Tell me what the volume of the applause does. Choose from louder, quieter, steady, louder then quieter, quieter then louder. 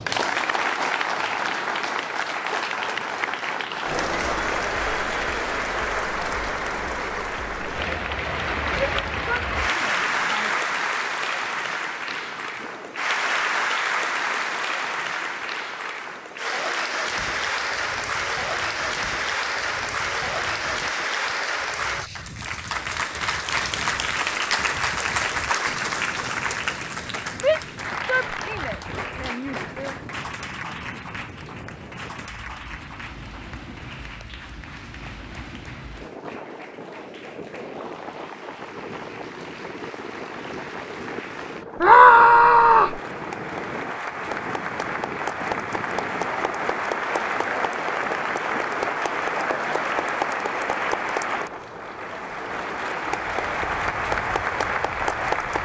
quieter then louder.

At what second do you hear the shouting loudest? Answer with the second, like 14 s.
42 s.